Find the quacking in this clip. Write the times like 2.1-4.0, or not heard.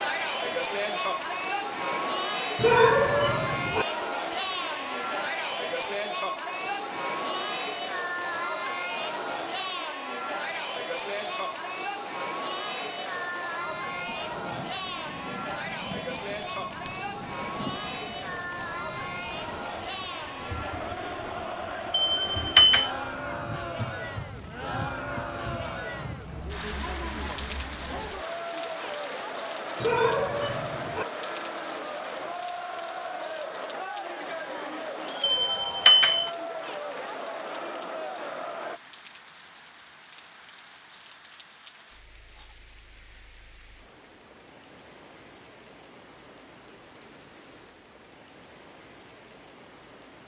not heard.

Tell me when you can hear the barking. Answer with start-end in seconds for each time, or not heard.
2.5-3.9, 29.8-31.1.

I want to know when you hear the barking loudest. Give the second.
3 s.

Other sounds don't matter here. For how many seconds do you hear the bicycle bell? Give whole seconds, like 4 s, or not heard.
2 s.